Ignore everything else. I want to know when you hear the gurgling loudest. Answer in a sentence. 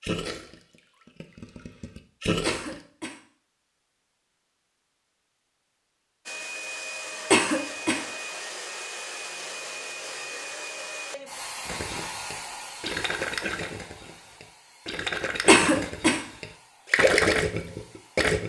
The loudest moment of the gurgling is at 17 seconds.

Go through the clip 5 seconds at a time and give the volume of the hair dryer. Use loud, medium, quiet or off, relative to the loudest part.
off, loud, loud, quiet.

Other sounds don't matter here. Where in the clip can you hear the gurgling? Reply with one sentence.
The gurgling can be heard from 0.0 to 2.8 s and from 11.7 to 18.4 s.